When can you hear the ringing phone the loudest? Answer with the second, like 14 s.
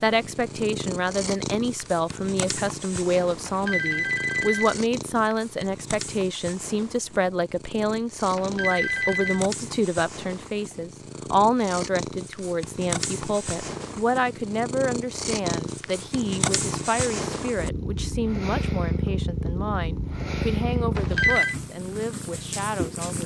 21 s.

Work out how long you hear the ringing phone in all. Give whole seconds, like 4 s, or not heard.
3 s.